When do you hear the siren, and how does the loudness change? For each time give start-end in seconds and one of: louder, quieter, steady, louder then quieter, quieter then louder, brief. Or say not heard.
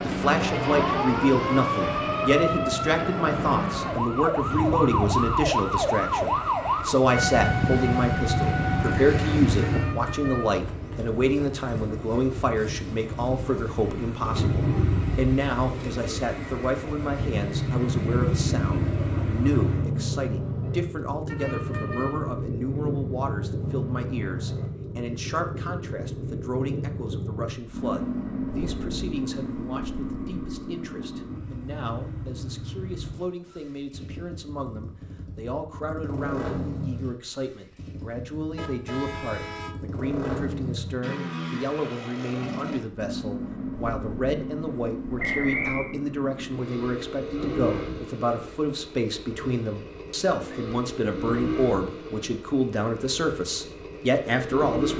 0.0-9.9 steady.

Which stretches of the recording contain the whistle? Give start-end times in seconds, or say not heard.
45.1-45.9.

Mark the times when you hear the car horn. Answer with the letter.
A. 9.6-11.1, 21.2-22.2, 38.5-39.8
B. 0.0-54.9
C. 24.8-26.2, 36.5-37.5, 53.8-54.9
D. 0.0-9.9
A.